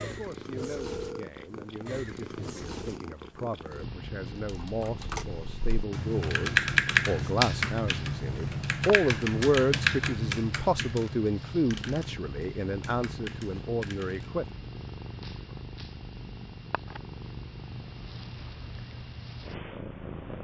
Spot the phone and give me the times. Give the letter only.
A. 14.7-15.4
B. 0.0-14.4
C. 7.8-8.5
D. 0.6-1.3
D.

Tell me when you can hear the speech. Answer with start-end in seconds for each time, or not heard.
0.0-14.4.